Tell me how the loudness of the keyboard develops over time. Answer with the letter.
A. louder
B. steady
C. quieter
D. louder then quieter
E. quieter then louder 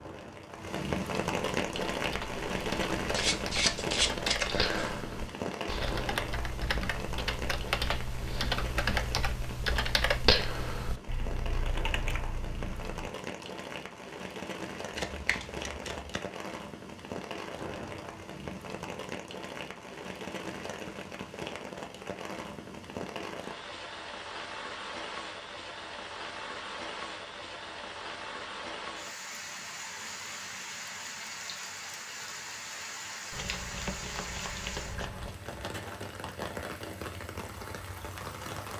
D.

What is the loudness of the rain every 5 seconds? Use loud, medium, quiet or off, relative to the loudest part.
loud, medium, medium, medium, medium, medium, medium, medium.